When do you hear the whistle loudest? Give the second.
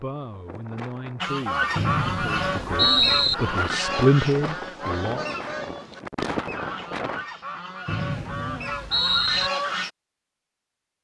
3 s.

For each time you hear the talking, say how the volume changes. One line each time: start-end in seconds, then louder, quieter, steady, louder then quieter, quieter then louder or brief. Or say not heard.
0.0-5.2 louder.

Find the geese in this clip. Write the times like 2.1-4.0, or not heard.
1.2-9.9.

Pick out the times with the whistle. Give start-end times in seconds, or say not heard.
1.8-3.4, 7.8-9.5.